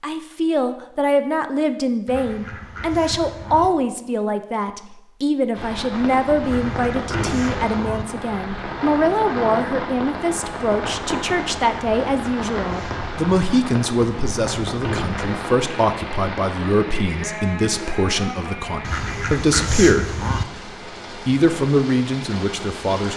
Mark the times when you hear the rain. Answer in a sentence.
The rain can be heard from 5.5 to 23.1 s.